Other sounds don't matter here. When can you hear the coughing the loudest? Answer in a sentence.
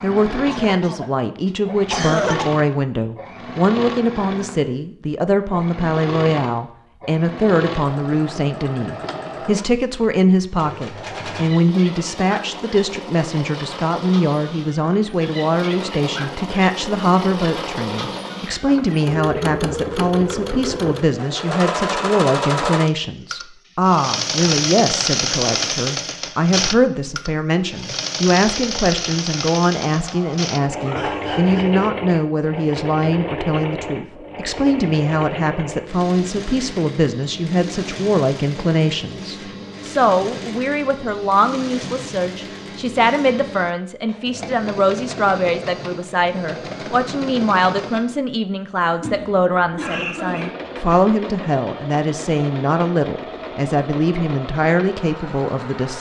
The volume of the coughing peaks at 2 seconds.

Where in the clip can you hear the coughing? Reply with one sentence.
The coughing can be heard from 0.5 to 2.5 s, from 29.8 to 31.9 s and from 48.8 to 50.6 s.